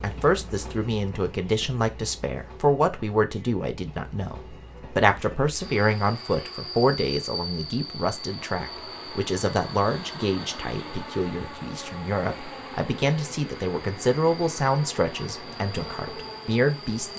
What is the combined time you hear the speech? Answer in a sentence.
You can hear the speech for 17 seconds altogether.